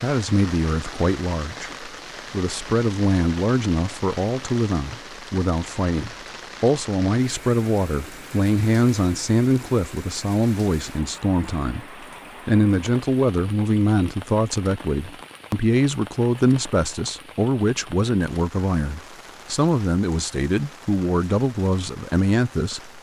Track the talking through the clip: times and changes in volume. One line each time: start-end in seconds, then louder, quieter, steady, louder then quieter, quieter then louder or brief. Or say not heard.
0.0-22.9 steady.